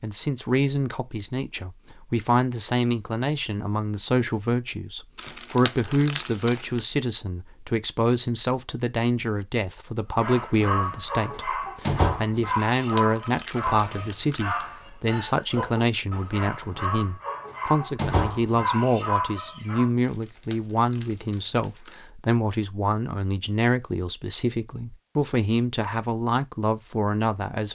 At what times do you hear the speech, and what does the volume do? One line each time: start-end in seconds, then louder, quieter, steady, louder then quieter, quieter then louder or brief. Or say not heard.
0.0-27.6 steady.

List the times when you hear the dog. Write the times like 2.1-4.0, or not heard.
10.2-19.9.